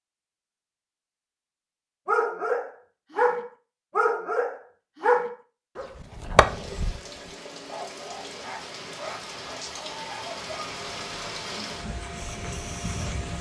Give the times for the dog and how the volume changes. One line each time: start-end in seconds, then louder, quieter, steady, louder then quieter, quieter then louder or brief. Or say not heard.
2.0-10.8 quieter.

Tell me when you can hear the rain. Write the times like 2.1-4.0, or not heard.
6.5-13.3.